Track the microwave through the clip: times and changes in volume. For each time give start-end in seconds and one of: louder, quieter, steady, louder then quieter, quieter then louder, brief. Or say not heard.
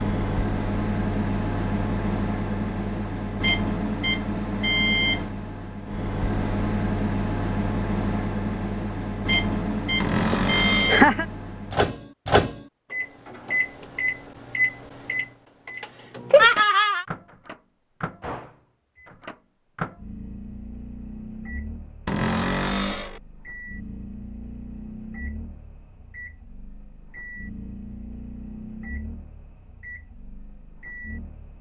0.0-31.5 quieter.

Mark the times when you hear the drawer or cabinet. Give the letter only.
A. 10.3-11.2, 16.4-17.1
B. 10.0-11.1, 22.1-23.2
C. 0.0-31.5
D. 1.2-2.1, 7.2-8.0
B.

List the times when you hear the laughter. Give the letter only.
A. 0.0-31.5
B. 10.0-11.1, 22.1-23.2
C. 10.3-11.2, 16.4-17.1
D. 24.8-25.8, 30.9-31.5
C.